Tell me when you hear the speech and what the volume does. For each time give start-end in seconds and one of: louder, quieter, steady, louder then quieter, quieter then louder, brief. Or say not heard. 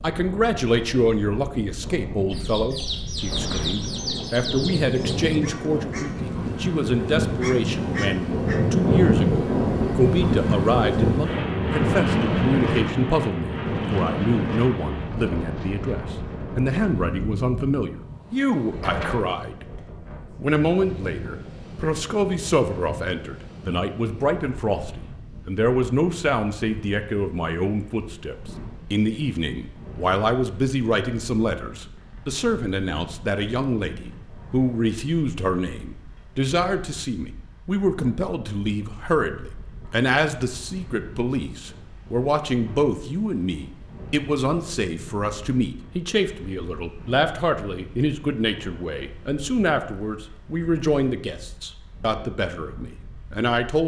0.0-19.6 steady
20.4-53.8 steady.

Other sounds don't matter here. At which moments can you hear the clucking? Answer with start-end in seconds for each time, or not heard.
2.3-8.6.